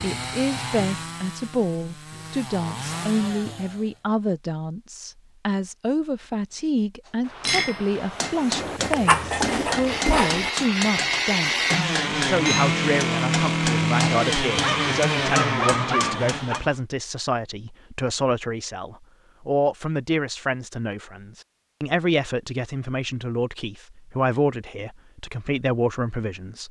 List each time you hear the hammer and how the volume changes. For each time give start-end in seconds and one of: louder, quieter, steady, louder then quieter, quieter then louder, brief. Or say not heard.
7.4-16.6 steady.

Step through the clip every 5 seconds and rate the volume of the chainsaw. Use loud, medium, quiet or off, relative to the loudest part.
medium, quiet, loud, loud, off, off.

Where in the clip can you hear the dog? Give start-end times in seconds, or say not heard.
8.8-10.5, 14.6-16.6.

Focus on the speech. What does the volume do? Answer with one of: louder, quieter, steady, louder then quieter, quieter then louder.
steady.